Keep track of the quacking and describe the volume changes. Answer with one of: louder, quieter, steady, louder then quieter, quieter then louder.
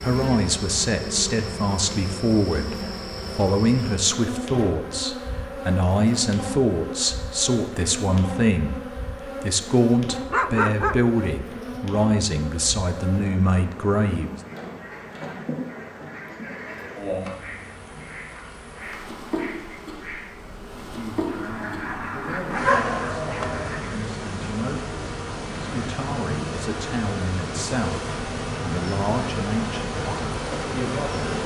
louder.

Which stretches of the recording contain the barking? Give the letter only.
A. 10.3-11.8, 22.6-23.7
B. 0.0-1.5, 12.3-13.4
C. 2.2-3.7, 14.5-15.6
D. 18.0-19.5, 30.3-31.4
A.